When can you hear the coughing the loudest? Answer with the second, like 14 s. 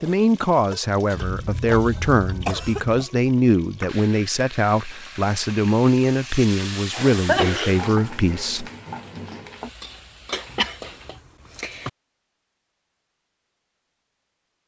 7 s.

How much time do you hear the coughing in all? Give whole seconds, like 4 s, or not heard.
4 s.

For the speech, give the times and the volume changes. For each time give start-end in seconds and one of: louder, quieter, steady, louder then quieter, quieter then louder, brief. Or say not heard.
0.0-8.7 steady.